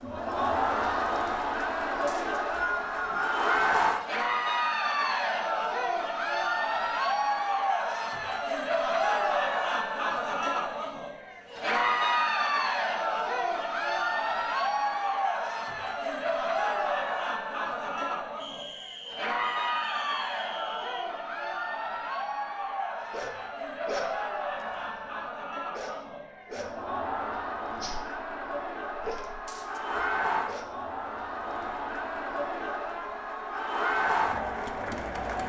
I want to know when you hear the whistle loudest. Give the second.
3 s.